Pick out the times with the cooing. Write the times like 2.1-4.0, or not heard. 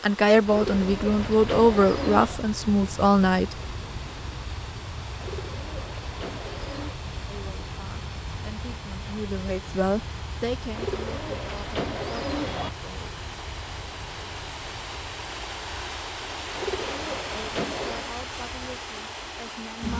0.5-2.4, 5.2-7.0, 10.7-12.7, 16.5-18.1.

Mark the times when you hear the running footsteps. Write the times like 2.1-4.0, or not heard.
not heard.